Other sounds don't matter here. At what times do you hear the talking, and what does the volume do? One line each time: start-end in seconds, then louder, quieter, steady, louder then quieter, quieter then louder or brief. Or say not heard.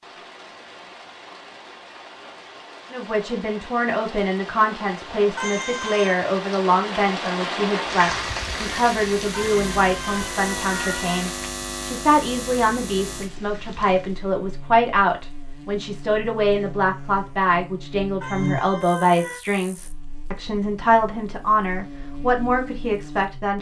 2.9-23.5 steady.